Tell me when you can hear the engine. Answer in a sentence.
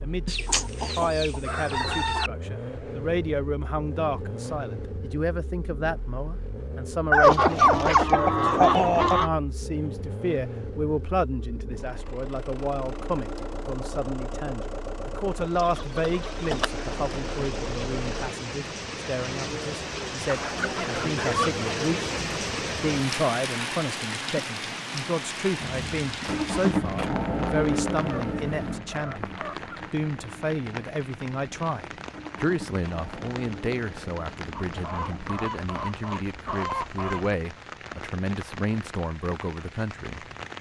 You can hear the engine from 0.0 to 18.3 s and from 25.6 to 35.4 s.